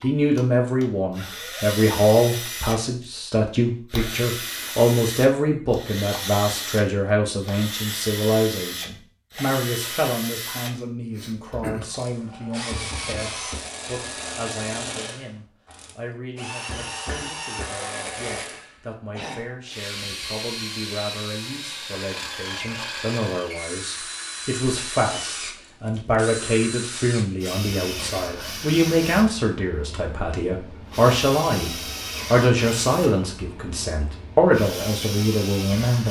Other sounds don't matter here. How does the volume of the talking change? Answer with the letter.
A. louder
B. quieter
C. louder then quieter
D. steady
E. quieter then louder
E.